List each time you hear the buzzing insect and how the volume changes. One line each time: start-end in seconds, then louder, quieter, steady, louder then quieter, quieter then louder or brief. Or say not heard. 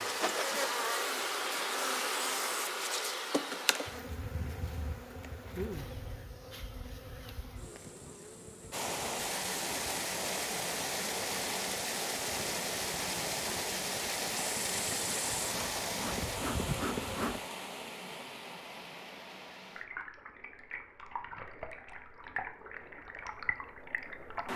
0.0-17.4 quieter then louder.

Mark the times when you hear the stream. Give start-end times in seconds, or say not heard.
8.7-24.5.